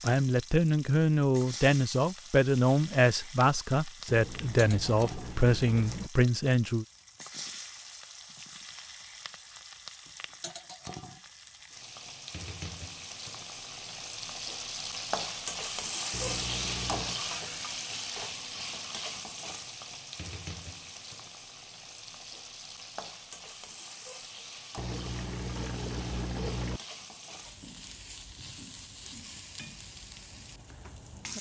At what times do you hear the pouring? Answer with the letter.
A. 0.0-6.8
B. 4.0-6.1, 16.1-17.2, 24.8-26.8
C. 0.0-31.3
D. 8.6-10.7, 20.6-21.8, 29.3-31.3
B.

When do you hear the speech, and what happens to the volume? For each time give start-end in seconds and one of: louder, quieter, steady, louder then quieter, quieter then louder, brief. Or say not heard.
0.0-6.8 steady.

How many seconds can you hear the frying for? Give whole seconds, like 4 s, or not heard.
31 s.